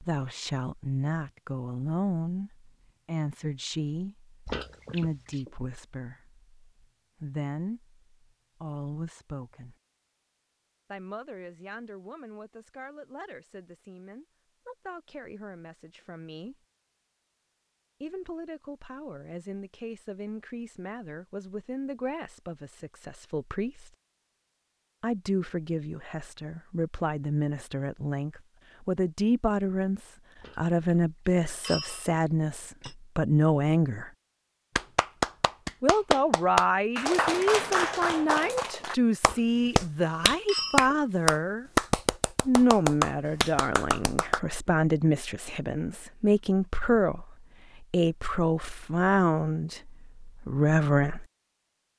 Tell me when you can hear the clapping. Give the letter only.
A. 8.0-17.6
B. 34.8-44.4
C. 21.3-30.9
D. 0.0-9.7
B.